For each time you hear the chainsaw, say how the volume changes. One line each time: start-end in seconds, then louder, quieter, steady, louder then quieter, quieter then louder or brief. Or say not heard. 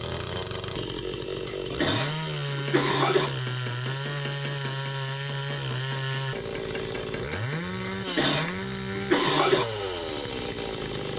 0.0-11.1 steady.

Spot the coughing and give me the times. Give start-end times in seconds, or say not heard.
1.4-3.3, 7.8-9.7.